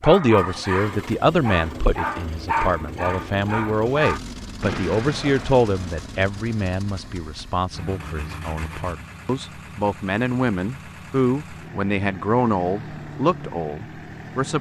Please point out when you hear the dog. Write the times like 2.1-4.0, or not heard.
0.0-4.2.